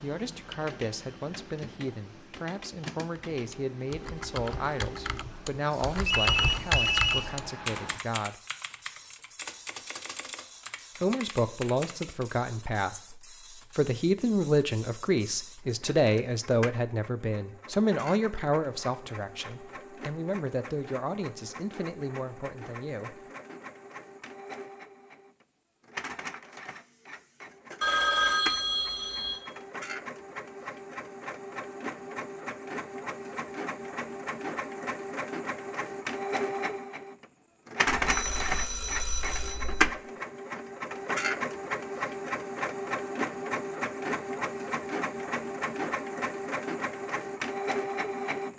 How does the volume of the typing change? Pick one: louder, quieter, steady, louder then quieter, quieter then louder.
louder then quieter.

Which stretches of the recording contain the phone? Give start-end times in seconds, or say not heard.
5.7-7.3, 27.8-29.4, 38.0-39.9.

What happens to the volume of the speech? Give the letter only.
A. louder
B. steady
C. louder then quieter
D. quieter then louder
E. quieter
C.